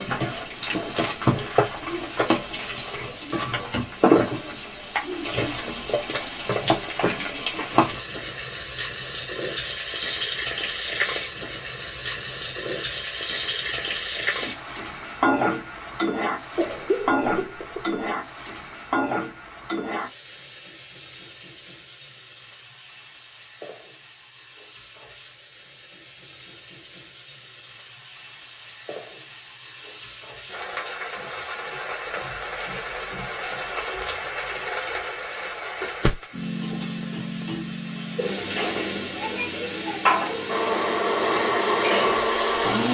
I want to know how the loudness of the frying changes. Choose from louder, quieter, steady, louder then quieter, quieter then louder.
quieter then louder.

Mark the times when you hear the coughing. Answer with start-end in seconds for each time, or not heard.
16.6-18.0.